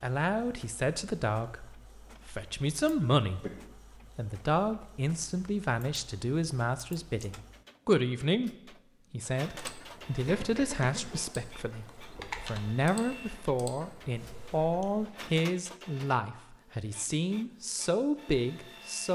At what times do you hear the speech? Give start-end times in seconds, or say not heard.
0.0-3.5, 4.2-19.1.